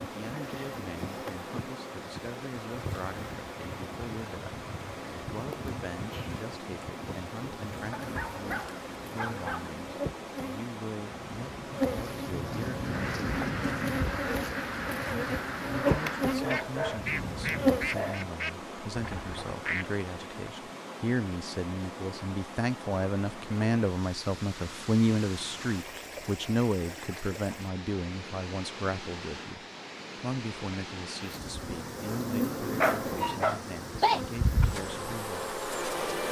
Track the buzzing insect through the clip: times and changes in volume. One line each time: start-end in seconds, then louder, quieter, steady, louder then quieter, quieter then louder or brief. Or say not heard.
0.0-18.2 louder
31.3-36.2 quieter then louder.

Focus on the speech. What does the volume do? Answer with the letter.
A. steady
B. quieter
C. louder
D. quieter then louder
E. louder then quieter
E.